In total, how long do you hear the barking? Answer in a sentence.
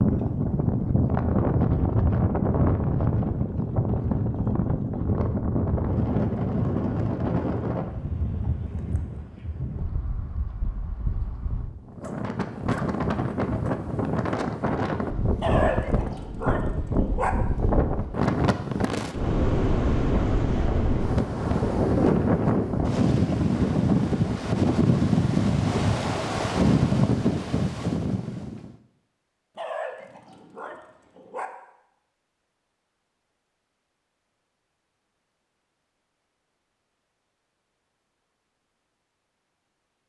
The barking can be heard for 4 seconds in total.